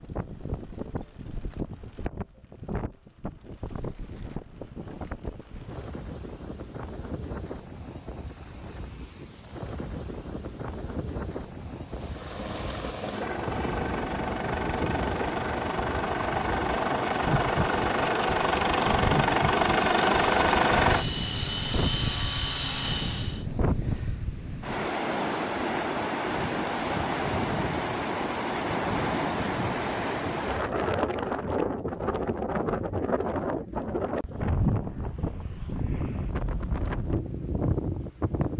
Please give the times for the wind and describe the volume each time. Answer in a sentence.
The wind can be heard from 0.0 to 38.5 s, getting louder.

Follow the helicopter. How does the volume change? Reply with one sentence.
The loudness of the helicopter goes up.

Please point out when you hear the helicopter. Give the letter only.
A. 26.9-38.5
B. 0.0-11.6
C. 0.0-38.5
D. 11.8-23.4
D.